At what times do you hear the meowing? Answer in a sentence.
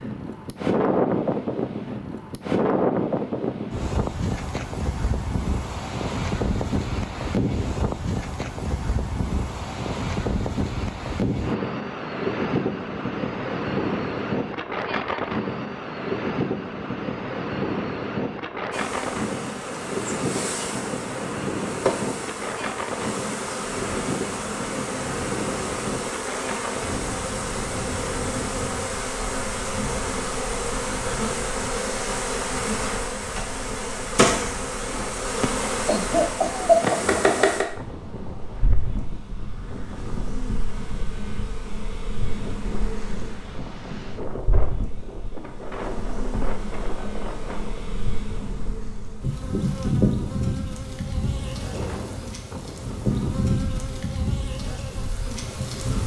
The meowing can't be heard in this clip.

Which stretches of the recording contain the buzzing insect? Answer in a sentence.
The buzzing insect can be heard from 18.7 to 56.0 s.